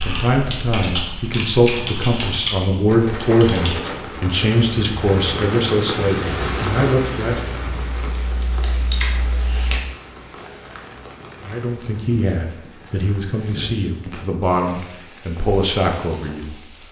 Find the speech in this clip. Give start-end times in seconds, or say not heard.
0.0-7.5, 11.4-16.8.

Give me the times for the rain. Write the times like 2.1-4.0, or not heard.
2.9-16.8.